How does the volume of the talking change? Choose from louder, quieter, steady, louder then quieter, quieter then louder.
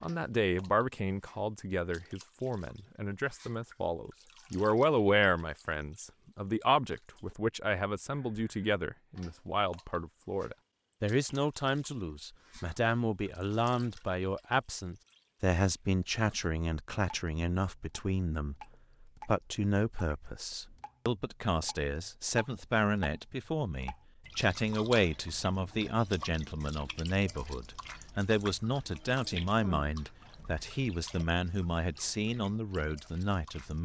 steady.